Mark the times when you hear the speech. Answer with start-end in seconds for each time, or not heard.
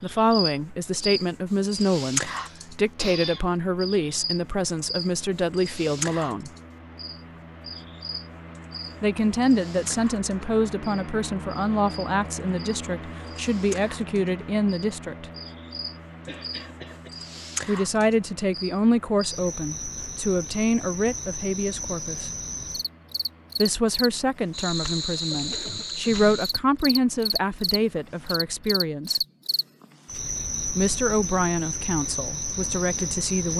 0.0-6.5, 9.0-15.2, 17.6-22.3, 23.6-29.2, 30.6-33.5.